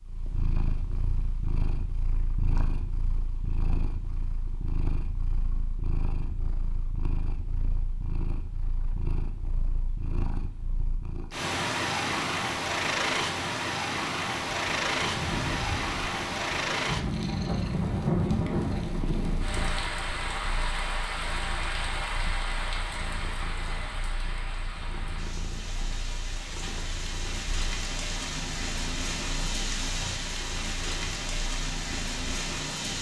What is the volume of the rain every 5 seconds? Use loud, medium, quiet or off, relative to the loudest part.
off, off, off, loud, loud, loud, loud.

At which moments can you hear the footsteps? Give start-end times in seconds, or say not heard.
not heard.